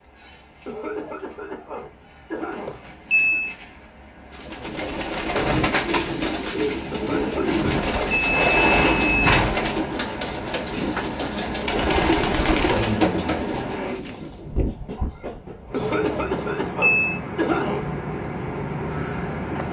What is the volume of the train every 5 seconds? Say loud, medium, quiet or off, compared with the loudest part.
quiet, loud, loud, loud.